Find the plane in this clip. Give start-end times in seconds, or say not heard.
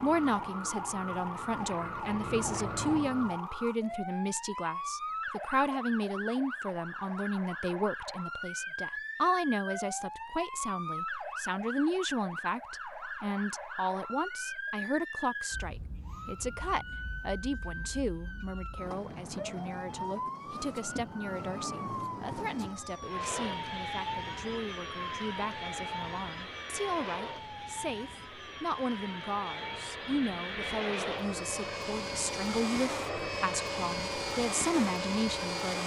0.0-3.4, 23.1-35.8.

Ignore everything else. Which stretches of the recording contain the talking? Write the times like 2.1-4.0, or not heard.
0.0-35.8.